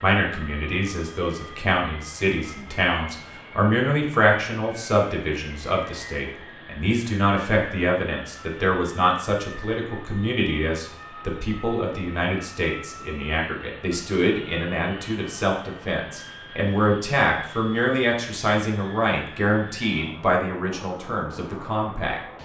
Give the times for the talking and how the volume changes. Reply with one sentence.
The talking can be heard from 0.0 to 22.2 s, at a steady volume.